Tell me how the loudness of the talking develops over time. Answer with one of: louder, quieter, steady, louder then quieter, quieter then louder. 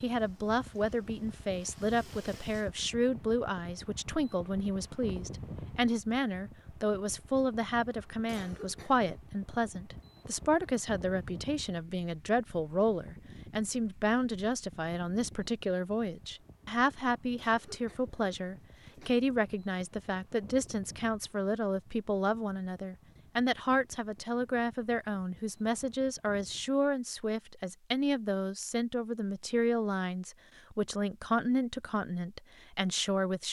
steady.